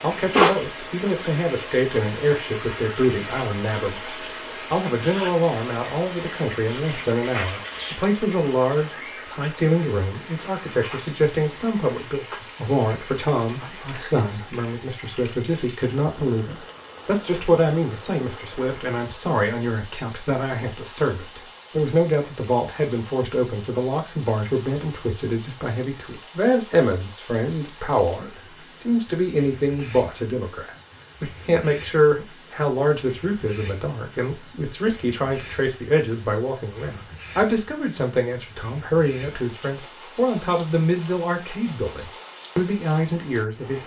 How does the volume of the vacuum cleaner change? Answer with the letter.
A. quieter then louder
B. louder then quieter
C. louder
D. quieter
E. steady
D.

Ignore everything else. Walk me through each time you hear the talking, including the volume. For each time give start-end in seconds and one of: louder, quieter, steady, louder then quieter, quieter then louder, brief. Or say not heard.
0.0-43.8 steady.